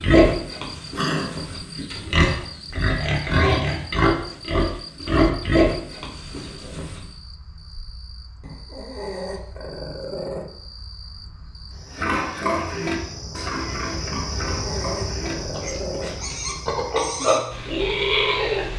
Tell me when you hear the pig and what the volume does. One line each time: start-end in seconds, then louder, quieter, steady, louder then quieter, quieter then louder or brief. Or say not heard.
0.0-7.0 louder
11.9-18.7 quieter then louder.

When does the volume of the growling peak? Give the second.
1 s.